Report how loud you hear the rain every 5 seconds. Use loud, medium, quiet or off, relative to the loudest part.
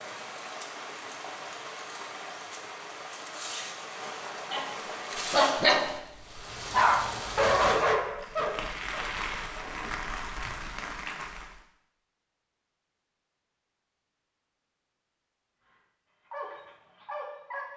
loud, loud, loud, off.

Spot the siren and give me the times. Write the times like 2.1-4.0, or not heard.
not heard.